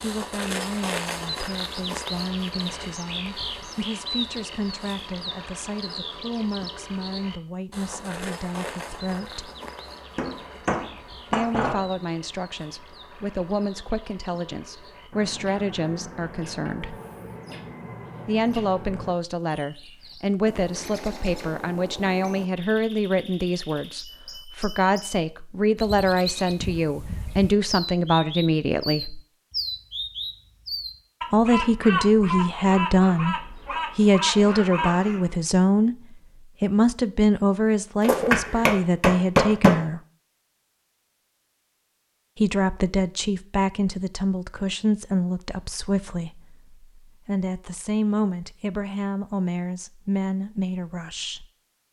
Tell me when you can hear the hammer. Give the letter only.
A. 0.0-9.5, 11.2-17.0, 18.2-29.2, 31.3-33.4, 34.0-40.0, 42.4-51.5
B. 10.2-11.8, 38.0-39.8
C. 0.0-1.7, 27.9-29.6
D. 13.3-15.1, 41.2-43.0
B.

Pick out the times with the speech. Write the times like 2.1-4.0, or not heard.
0.0-9.5, 11.2-17.0, 18.2-29.2, 31.3-33.4, 34.0-40.0, 42.4-51.5.